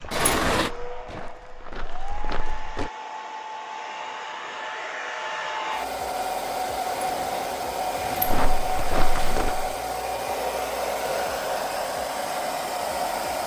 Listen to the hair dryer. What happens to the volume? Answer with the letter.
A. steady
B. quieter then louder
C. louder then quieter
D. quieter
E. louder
E.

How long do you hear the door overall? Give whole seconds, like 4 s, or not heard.
3 s.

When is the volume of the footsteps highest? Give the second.
9 s.